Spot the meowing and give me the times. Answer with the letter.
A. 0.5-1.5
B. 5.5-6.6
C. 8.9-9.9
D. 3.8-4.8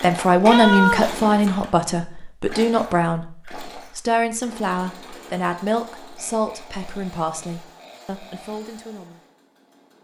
A.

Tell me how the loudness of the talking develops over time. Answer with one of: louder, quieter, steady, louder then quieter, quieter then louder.
quieter.